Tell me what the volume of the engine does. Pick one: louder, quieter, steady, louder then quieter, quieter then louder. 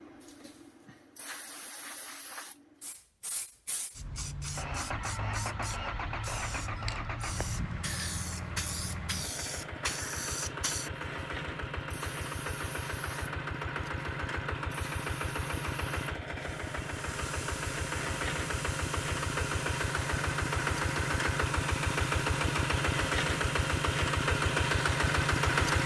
louder.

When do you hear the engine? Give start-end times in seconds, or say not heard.
4.5-25.8.